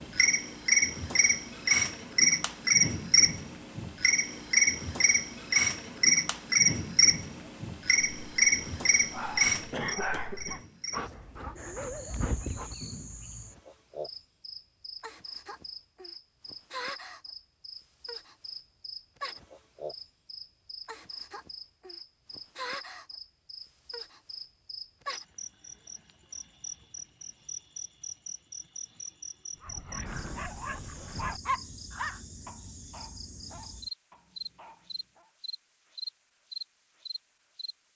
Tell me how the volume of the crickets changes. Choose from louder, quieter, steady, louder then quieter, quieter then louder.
quieter.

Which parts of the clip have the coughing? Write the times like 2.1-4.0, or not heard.
9.7-10.7.